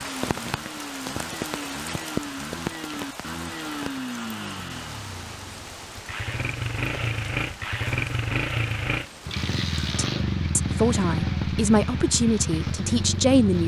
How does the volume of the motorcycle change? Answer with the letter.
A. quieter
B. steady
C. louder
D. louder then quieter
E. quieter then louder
C.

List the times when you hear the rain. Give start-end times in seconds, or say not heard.
0.0-13.6.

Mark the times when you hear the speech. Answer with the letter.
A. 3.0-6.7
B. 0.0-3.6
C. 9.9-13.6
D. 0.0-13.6
C.